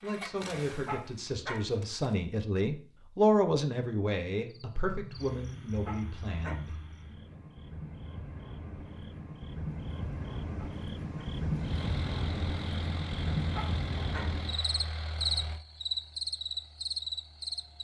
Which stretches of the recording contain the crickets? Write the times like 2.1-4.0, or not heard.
4.5-17.8.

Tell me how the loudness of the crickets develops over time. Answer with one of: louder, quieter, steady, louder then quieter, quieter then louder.
louder.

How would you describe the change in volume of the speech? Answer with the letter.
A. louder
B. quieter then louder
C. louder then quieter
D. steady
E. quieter
C.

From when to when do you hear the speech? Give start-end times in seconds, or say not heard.
0.0-7.4.